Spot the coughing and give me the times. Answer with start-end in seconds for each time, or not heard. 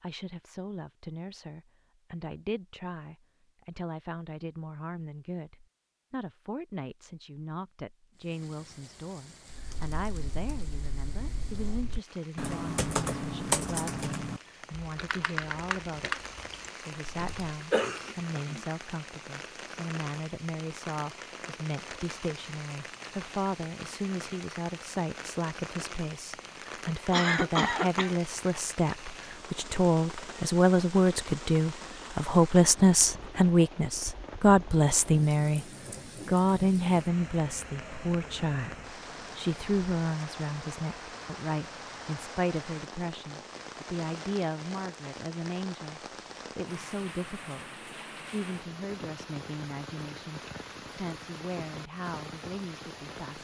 17.2-18.6, 27.1-28.1.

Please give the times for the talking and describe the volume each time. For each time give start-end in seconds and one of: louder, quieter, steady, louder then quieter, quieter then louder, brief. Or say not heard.
0.0-35.6 louder
36.2-53.3 quieter.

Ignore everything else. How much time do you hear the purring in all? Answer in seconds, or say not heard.
not heard.